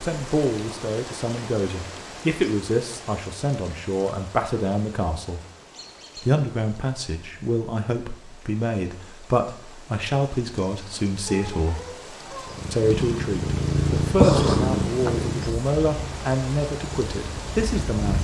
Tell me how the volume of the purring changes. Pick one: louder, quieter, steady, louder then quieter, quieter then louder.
louder then quieter.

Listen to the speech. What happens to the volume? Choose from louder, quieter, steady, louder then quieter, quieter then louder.
steady.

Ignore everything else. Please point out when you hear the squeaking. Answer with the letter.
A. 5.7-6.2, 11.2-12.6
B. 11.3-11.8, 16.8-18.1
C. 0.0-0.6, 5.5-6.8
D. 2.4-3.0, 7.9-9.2
A.